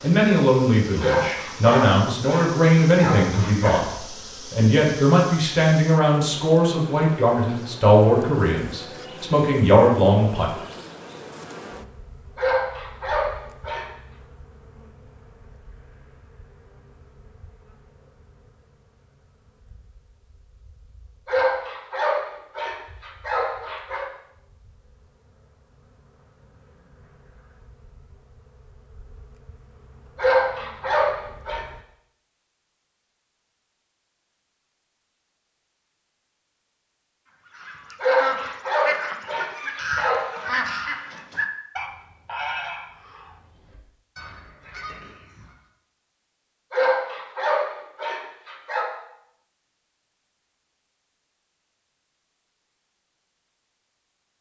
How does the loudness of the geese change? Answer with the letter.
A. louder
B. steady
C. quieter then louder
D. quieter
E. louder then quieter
D.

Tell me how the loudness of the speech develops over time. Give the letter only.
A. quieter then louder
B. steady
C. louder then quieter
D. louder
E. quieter
B.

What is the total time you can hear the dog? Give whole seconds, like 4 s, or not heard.
13 s.